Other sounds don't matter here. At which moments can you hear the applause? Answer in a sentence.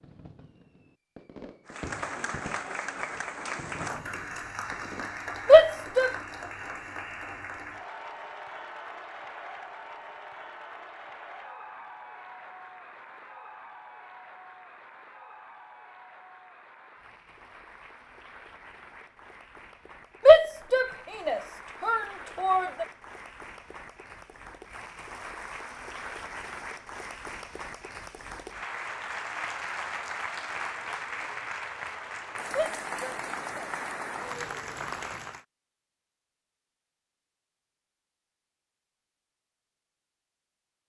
The applause can be heard from 1.6 to 35.5 s.